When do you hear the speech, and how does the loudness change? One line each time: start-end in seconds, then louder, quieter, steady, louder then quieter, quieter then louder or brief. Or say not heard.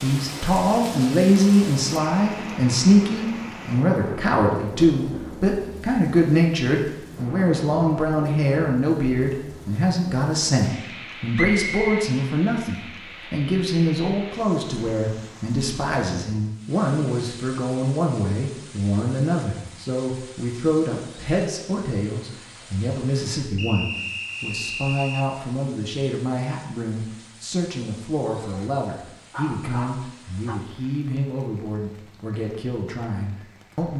0.0-33.9 quieter.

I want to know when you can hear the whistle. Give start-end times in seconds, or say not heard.
11.3-12.1, 23.6-25.2.